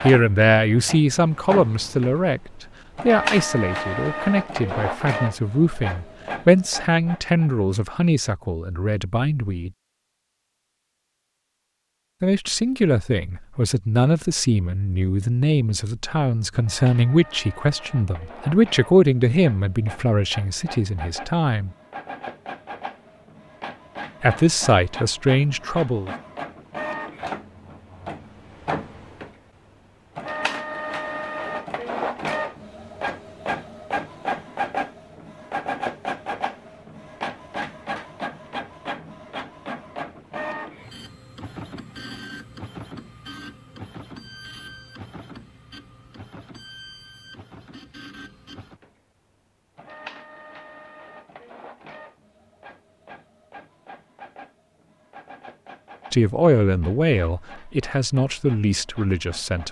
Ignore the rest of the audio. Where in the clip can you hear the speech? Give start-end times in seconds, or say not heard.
0.0-9.7, 12.2-21.7, 24.2-26.1, 56.1-59.6.